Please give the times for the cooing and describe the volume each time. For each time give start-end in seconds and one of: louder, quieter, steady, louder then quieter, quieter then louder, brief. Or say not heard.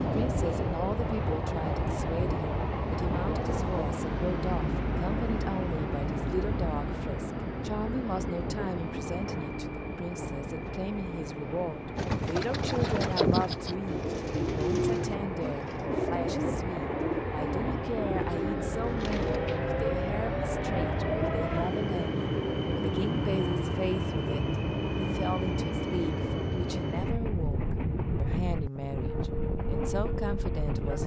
11.9-19.6 quieter.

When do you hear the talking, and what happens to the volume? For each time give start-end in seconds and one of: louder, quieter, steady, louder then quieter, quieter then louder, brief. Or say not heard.
0.0-31.0 steady.